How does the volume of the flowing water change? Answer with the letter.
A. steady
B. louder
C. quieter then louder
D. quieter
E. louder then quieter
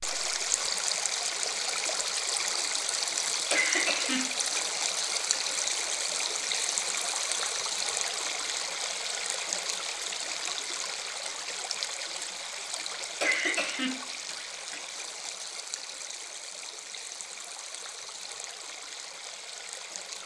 D.